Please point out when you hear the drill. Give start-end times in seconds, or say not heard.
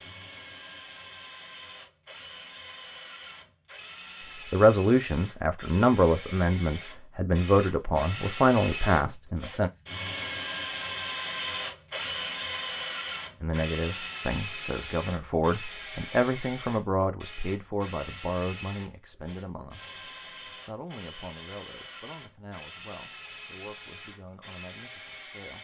0.0-25.5.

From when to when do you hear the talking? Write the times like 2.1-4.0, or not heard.
4.5-9.7, 13.4-25.5.